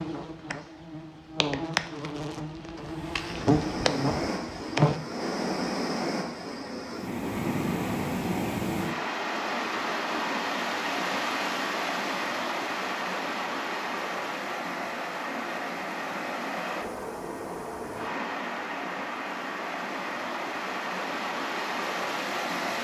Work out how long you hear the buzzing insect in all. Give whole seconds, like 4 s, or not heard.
5 s.